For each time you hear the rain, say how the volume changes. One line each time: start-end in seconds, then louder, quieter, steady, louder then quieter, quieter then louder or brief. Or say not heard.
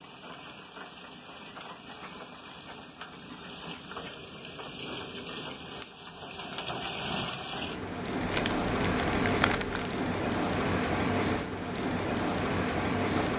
0.0-13.3 louder.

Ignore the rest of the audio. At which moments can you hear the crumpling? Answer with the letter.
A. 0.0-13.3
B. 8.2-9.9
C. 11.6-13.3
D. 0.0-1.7
B.